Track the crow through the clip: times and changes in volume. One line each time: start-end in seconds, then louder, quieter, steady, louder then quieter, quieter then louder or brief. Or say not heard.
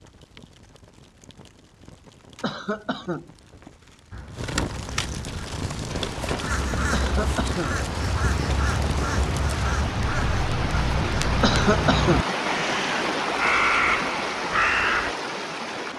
4.1-15.2 louder.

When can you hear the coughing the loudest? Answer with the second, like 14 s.
12 s.